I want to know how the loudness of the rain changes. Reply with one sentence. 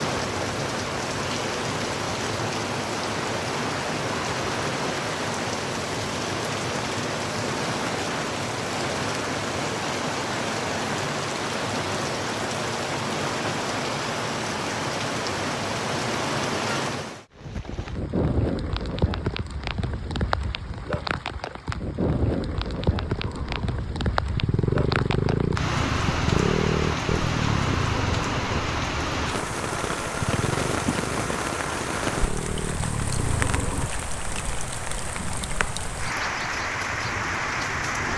The volume of the rain stays about the same.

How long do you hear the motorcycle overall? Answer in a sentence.
You can hear the motorcycle for 11 seconds altogether.